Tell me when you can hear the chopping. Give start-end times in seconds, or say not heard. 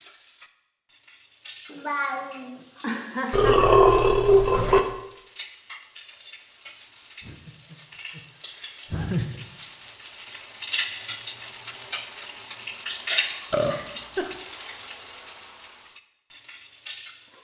not heard.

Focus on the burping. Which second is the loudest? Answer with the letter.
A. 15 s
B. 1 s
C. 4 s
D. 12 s
C.